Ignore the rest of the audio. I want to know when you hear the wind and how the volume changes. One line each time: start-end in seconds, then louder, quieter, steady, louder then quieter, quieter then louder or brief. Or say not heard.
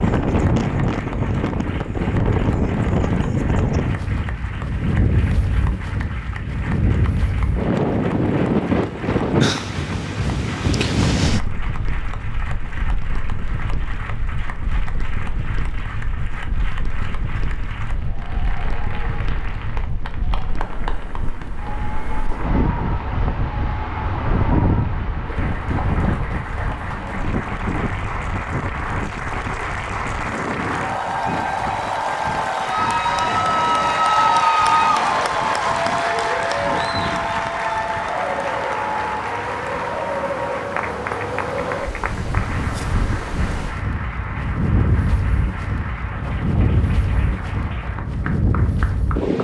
0.0-49.4 quieter then louder.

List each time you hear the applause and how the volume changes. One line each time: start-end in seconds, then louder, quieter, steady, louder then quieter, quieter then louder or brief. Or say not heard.
0.0-49.4 louder then quieter.